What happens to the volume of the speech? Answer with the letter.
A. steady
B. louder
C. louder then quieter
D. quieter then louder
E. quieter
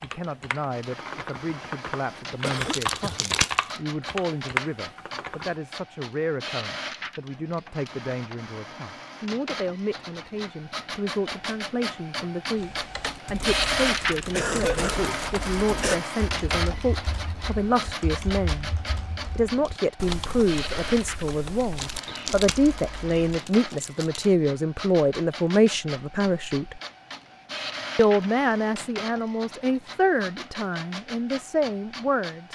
B.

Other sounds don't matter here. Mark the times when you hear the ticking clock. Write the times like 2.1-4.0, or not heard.
not heard.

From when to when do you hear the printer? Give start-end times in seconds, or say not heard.
0.0-32.5.